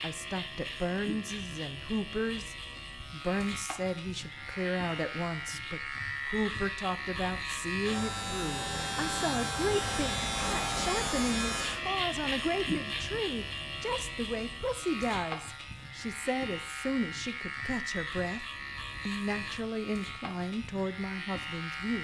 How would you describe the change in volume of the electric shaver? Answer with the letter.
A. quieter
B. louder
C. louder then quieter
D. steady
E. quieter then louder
C.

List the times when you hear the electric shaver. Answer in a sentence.
You can hear the electric shaver from 0.0 to 22.0 s.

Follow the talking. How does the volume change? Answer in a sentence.
The loudness of the talking stays about the same.